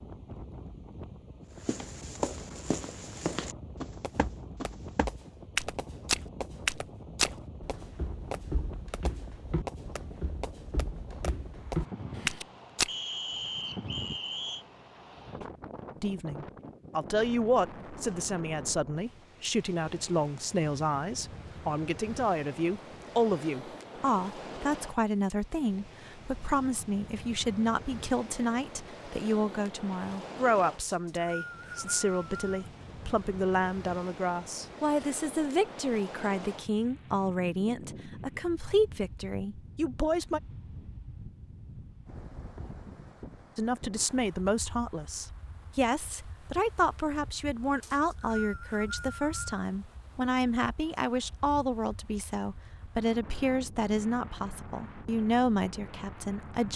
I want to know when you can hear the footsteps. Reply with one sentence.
The footsteps can be heard from 1.6 to 12.9 s.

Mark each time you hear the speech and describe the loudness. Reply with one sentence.
The speech can be heard from 16.0 to 40.4 s, at a steady volume; and from 43.5 to 56.7 s, at a steady volume.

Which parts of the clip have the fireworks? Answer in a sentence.
The fireworks can be heard from 4.0 to 12.4 s.